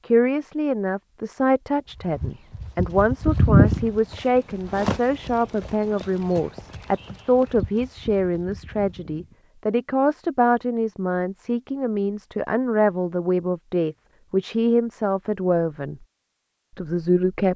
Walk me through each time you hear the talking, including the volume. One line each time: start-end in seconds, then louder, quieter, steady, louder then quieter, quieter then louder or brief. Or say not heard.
0.1-16.0 steady
16.8-17.5 brief.